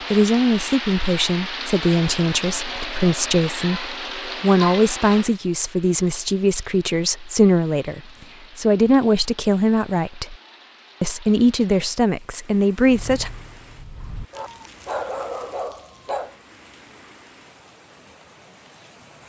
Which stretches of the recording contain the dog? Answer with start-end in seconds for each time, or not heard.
12.8-16.4.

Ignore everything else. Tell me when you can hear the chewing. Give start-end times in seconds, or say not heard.
not heard.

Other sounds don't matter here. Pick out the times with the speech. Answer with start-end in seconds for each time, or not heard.
0.1-10.3, 11.0-13.3.